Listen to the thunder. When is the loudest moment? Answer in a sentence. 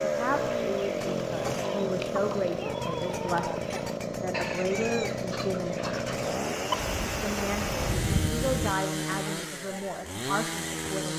The volume of the thunder peaks at 8 seconds.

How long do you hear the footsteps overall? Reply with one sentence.
The footsteps can't be heard in this clip.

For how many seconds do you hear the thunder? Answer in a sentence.
The thunder can be heard for 2 seconds in total.